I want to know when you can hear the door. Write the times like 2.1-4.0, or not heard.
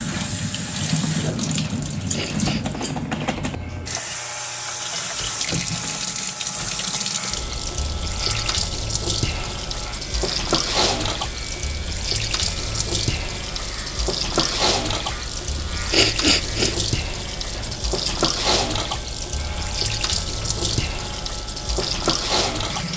not heard.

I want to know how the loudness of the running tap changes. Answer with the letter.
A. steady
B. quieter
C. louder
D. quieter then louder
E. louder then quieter
A.